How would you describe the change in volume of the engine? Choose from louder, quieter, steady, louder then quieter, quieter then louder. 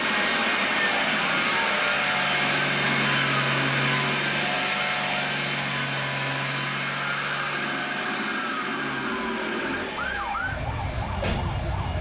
quieter.